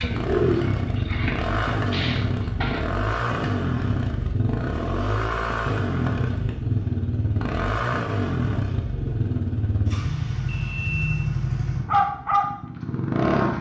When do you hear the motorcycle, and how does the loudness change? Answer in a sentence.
You can hear the motorcycle from 0.0 to 13.5 s, at a steady volume.